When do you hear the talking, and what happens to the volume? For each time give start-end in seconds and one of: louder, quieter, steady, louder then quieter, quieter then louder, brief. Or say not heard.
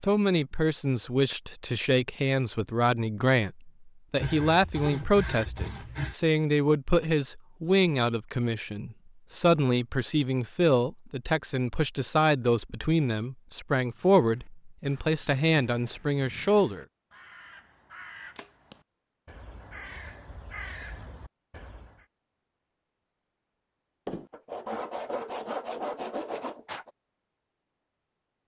0.0-16.9 steady.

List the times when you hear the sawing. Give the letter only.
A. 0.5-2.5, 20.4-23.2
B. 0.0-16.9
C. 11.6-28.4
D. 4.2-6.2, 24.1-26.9
D.